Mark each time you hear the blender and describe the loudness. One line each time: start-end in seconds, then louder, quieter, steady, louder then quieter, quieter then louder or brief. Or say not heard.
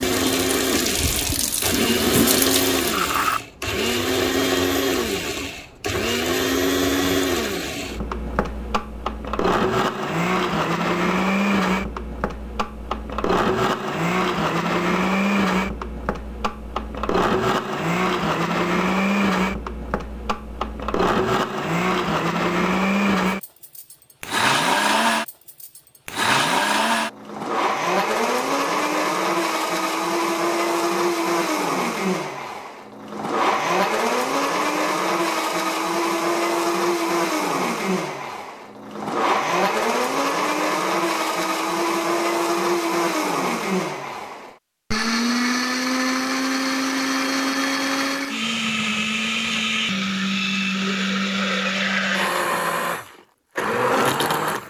0.0-54.6 steady.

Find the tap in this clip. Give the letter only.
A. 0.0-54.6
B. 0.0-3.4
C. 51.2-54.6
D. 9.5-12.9
B.